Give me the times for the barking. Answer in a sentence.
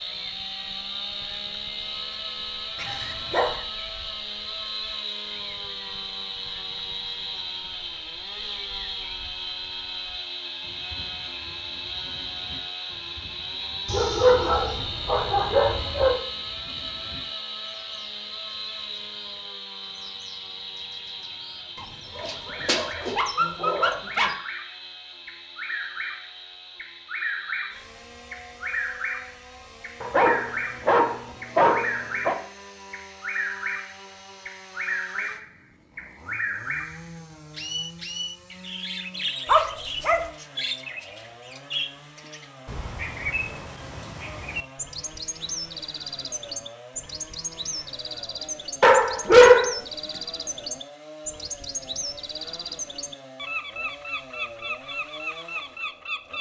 The barking can be heard from 2.8 to 3.5 s, from 13.8 to 16.2 s, from 21.8 to 24.4 s, from 30.0 to 32.4 s, from 39.5 to 40.2 s and from 48.8 to 49.8 s.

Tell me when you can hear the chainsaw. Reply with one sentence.
You can hear the chainsaw from 0.0 to 56.3 s.